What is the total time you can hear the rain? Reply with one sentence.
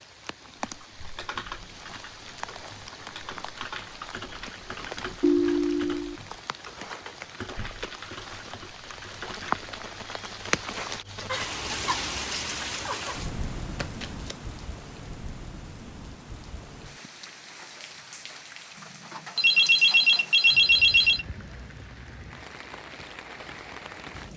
The rain can be heard for 24 seconds in total.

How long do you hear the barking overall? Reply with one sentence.
The barking can't be heard in this clip.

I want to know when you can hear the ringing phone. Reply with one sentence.
You can hear the ringing phone from 5.2 to 6.2 s, from 9.2 to 11.9 s and from 19.4 to 21.2 s.